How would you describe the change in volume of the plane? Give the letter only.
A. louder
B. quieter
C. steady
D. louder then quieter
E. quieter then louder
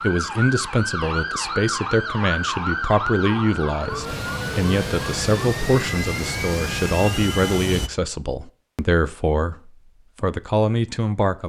C.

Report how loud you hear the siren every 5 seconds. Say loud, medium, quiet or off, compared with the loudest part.
loud, medium, off.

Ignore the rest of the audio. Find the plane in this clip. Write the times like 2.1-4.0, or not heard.
3.9-7.9.